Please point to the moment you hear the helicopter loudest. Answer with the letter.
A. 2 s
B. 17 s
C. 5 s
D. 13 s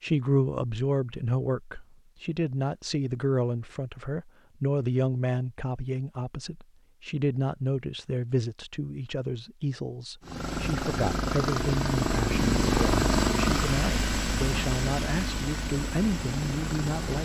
D.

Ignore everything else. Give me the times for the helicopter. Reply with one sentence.
You can hear the helicopter from 10.2 to 17.2 s.